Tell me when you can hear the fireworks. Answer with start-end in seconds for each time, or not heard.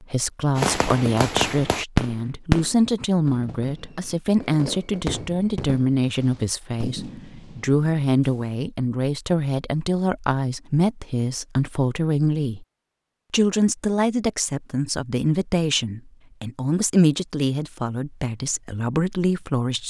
0.6-8.5.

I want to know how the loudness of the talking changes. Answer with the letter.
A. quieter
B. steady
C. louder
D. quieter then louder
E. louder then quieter
B.